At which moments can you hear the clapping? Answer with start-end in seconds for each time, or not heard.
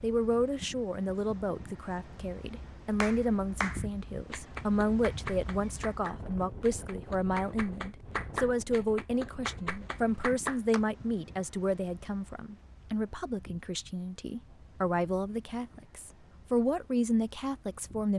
3.0-10.8.